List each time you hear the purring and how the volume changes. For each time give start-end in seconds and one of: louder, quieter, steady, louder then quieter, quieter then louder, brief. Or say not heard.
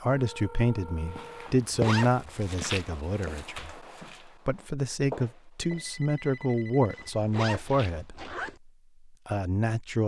not heard.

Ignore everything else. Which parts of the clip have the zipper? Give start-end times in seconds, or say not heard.
1.4-2.5, 7.0-8.6.